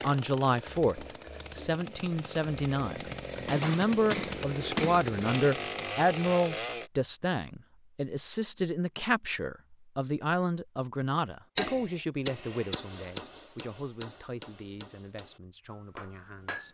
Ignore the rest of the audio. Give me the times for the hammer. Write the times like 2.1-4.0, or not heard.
3.5-5.9, 11.6-16.6.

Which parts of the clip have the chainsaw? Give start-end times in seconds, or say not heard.
0.0-6.9.